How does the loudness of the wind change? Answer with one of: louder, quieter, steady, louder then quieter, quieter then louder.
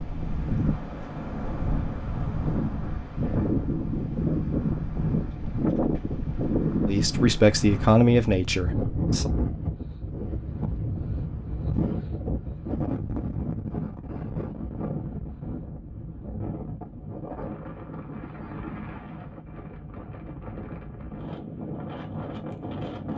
quieter.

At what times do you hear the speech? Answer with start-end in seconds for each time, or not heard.
6.8-9.3.